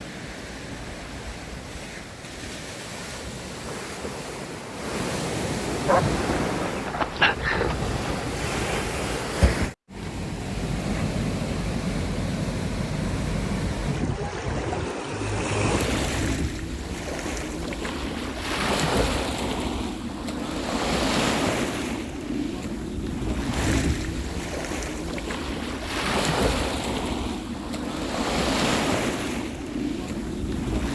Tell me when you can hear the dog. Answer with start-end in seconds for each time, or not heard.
5.8-7.8.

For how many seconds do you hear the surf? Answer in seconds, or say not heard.
31 s.